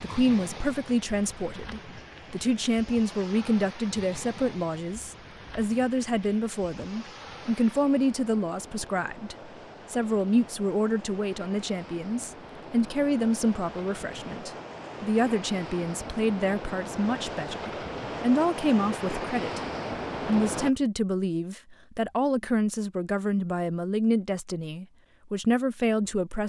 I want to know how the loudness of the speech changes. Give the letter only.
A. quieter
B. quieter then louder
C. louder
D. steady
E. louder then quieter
D.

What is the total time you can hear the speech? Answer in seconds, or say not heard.
26 s.